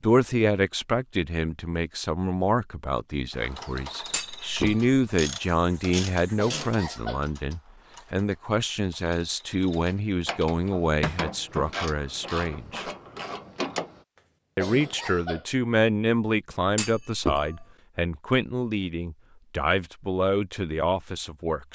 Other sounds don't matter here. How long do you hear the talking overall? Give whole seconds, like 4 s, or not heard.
20 s.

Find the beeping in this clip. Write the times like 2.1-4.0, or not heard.
not heard.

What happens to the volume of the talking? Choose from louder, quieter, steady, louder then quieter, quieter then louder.
steady.